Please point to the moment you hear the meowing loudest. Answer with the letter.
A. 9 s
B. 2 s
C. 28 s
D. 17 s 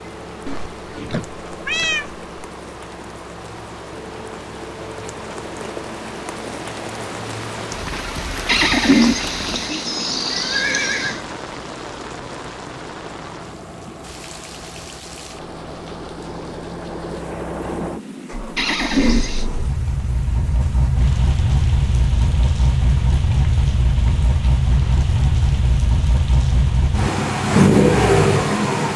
B.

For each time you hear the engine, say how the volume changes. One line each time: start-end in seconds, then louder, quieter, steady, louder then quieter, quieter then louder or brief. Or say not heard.
0.0-28.9 louder.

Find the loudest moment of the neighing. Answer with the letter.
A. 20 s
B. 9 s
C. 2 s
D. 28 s
B.